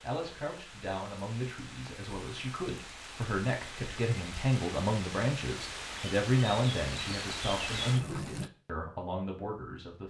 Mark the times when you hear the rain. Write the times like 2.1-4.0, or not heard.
0.0-8.5.